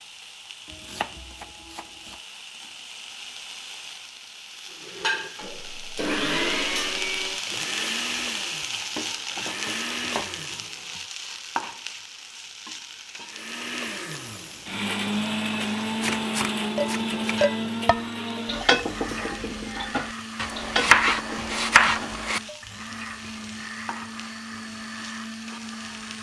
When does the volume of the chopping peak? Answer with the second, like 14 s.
21 s.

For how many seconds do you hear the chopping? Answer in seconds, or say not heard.
6 s.